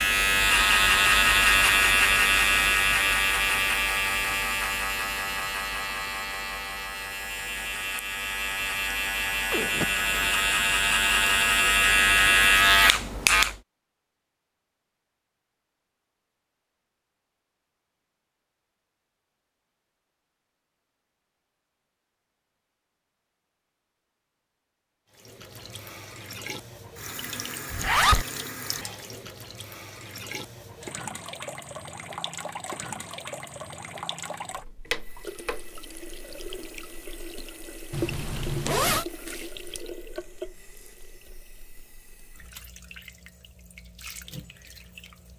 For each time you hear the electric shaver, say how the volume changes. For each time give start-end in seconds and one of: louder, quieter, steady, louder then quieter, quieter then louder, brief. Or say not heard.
0.0-13.6 quieter then louder.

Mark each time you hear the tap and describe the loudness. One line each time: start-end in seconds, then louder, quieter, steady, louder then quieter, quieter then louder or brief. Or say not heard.
25.1-45.3 quieter.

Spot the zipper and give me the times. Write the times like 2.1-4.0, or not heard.
9.5-10.4, 27.7-28.2, 37.9-39.0.